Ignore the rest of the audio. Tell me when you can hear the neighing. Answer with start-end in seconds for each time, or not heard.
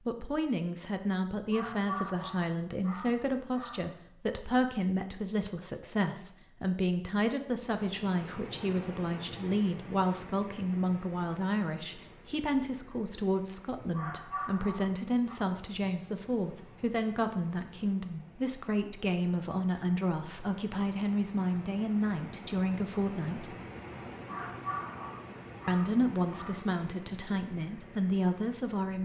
not heard.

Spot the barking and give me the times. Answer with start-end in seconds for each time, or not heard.
1.4-4.0, 13.8-15.3, 24.1-26.6.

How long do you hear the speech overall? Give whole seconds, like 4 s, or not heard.
27 s.